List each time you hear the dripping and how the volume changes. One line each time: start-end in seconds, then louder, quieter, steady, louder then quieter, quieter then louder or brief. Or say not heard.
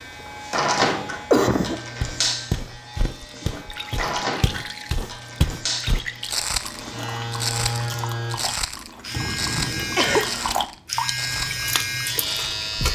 3.1-12.8 louder.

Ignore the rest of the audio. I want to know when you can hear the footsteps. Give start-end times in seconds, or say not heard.
2.0-12.6.